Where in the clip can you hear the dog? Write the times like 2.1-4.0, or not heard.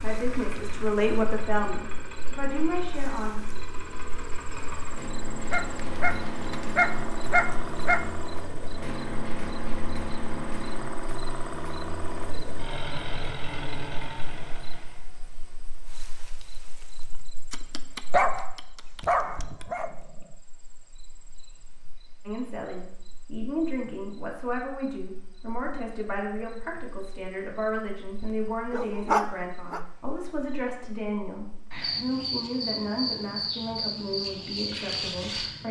5.5-8.1, 17.5-19.9, 28.2-29.8.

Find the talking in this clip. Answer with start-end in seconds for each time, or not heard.
0.0-3.5, 22.2-35.6.